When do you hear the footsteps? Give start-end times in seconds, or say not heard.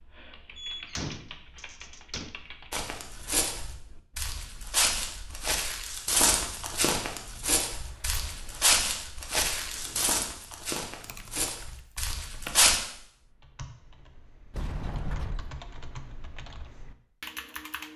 2.7-12.8.